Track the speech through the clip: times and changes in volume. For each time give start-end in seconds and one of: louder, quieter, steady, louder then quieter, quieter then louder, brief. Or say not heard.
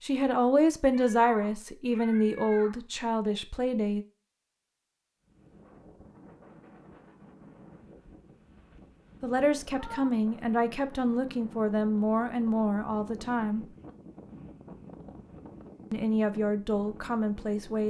0.0-4.0 quieter
9.2-13.7 steady
15.9-17.8 brief.